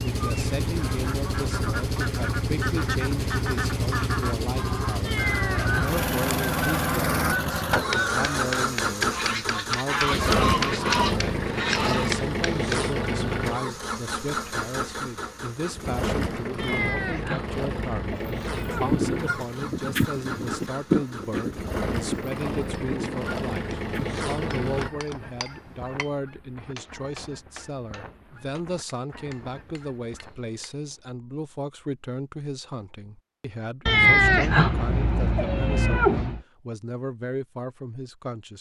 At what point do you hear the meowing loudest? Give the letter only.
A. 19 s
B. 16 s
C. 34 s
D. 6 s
C.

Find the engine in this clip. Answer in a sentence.
The engine can be heard from 0.0 to 24.9 s.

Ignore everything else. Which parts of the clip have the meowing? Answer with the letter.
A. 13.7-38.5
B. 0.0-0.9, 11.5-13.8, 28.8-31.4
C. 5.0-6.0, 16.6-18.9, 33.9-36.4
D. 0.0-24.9
C.